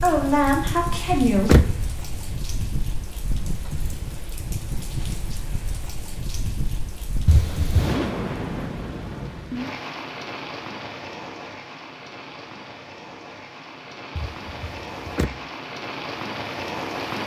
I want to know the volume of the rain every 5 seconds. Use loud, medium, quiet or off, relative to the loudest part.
loud, loud, medium, loud.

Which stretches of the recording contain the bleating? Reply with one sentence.
You can't hear the bleating here.